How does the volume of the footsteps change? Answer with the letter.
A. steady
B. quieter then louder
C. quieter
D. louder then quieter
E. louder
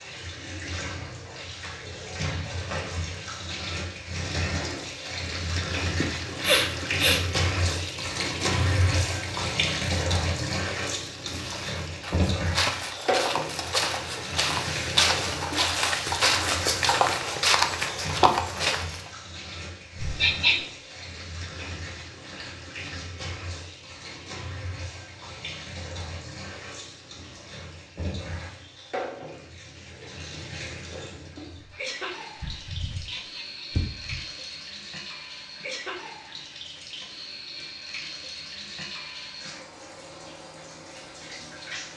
E.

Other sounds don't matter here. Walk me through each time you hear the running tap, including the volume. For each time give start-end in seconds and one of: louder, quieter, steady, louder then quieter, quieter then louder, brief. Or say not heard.
0.0-41.9 quieter.